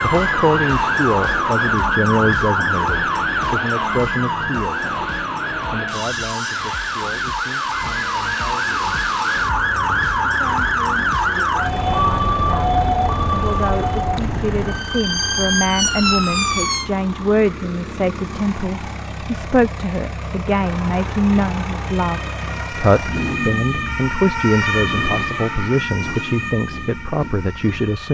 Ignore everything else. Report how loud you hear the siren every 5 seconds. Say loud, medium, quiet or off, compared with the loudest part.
loud, loud, loud, loud, medium, medium.